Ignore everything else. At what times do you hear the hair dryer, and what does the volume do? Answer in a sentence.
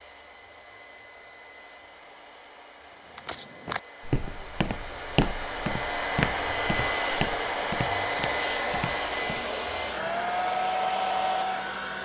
The hair dryer can be heard from 0.0 to 11.9 s, getting louder.